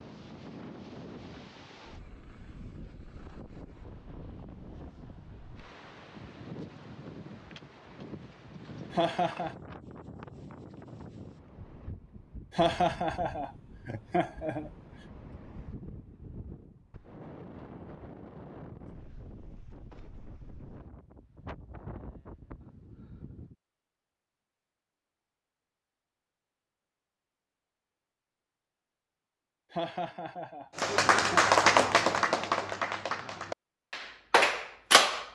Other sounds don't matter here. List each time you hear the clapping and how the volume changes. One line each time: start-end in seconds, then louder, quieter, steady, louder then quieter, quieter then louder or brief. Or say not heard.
30.8-35.2 quieter then louder.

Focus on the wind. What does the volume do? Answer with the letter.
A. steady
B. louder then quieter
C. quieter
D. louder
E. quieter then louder
A.